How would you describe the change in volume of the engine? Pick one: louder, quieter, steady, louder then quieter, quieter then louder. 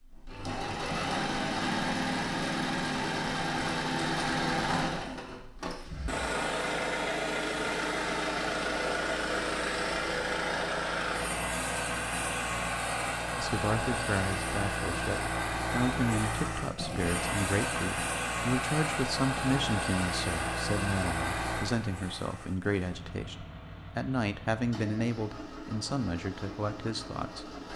quieter.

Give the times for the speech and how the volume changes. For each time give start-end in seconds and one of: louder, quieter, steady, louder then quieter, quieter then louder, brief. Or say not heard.
13.3-27.6 steady.